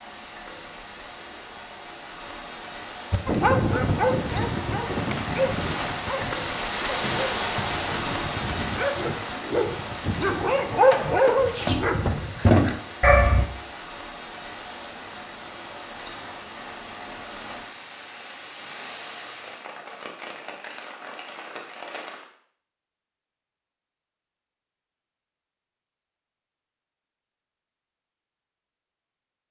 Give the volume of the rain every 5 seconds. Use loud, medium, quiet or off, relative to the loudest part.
medium, loud, medium, medium, medium, off.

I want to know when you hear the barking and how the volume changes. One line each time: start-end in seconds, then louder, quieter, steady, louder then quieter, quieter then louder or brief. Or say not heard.
3.1-13.5 quieter then louder.